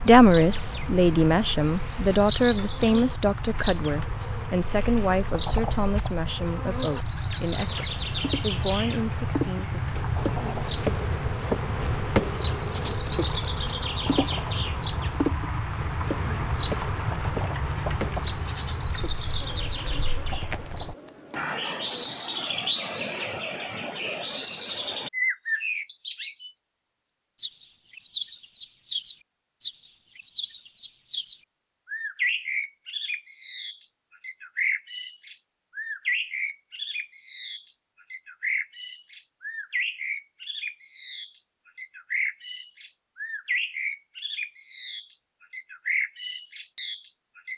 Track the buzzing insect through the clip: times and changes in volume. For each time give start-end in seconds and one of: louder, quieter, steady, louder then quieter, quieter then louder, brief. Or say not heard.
0.0-22.1 louder then quieter.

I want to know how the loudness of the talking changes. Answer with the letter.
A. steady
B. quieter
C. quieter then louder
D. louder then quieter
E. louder
B.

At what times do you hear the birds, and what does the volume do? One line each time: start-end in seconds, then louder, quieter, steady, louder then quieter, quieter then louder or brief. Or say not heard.
0.0-47.5 steady.